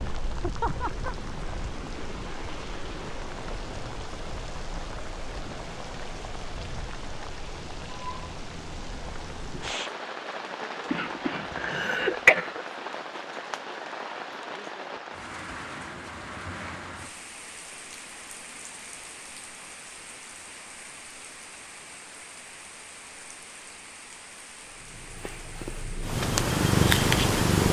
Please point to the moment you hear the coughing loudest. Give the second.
12 s.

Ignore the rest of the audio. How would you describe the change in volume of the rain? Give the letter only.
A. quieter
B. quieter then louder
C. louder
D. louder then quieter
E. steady
A.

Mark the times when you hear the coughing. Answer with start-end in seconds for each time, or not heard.
10.9-12.6.